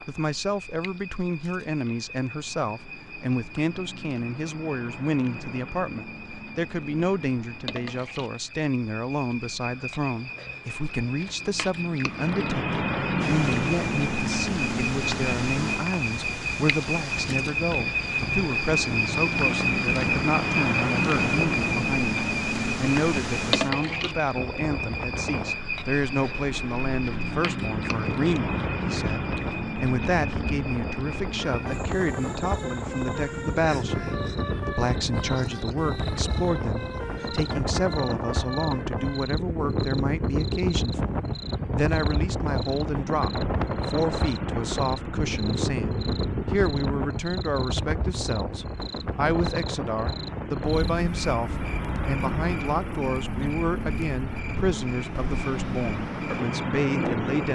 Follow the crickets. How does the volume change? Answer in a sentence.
The volume of the crickets goes up, then down.